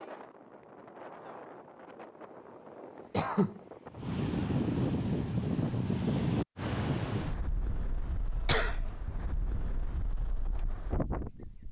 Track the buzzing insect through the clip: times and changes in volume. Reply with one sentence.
The buzzing insect can't be heard in this clip.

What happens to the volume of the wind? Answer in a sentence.
The loudness of the wind goes up, then down.